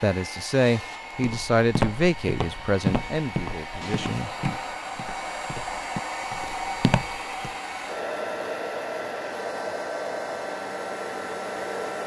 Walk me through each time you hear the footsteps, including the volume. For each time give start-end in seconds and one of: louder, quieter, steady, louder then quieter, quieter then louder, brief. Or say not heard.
1.2-7.5 quieter then louder.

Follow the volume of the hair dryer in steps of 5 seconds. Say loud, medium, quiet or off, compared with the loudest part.
medium, loud, loud.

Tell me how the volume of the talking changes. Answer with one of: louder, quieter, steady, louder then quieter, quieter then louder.
quieter.